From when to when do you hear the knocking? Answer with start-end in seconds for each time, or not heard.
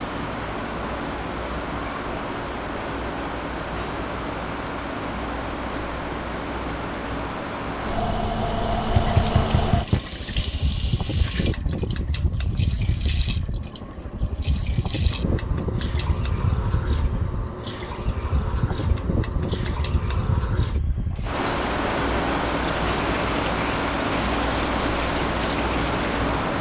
8.9-10.1.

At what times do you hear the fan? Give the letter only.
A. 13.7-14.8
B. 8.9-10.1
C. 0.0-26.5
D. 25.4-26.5
C.